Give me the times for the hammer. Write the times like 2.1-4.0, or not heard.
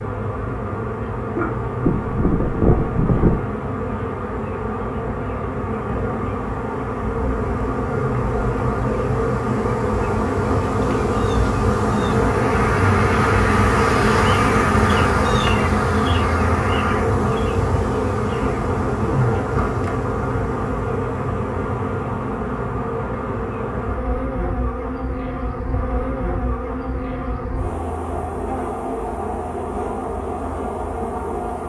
not heard.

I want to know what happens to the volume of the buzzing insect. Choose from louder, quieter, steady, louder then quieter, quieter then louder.
louder then quieter.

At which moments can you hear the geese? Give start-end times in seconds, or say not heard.
1.8-3.4.